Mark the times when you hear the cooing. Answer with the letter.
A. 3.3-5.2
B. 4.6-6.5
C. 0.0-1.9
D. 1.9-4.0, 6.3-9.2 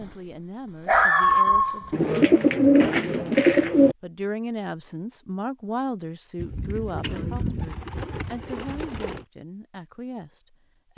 D.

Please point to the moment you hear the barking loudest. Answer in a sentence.
The loudest moment of the barking is at 1 second.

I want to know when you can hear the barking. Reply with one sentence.
You can hear the barking from 0.0 to 1.9 s.